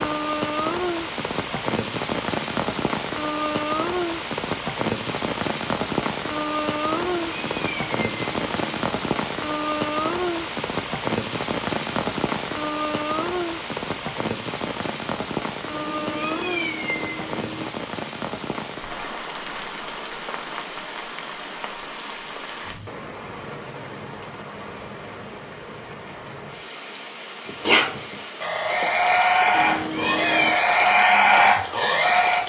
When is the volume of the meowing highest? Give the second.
30 s.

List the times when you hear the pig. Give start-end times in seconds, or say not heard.
27.4-32.4.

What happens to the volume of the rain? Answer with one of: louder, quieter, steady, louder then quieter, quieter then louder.
quieter.